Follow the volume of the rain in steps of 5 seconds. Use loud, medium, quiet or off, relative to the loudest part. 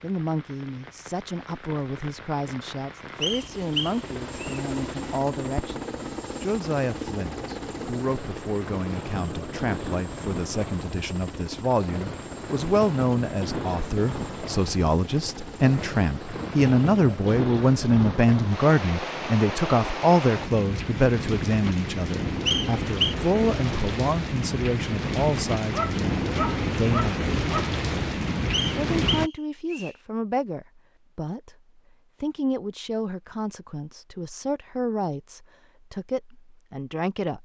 quiet, medium, medium, medium, loud, loud, off, off.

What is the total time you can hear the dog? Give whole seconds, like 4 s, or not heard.
2 s.